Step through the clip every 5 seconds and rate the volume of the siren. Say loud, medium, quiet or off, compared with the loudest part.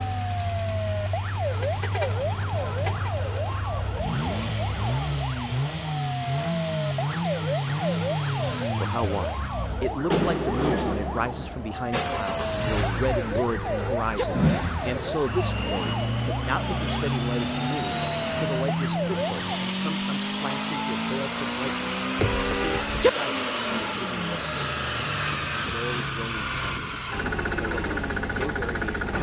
loud, loud, loud, loud, off, off.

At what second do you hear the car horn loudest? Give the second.
23 s.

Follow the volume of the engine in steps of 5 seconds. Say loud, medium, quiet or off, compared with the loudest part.
medium, loud, loud, loud, loud, loud.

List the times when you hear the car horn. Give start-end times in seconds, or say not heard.
1.6-3.1, 13.3-14.2, 22.1-23.1.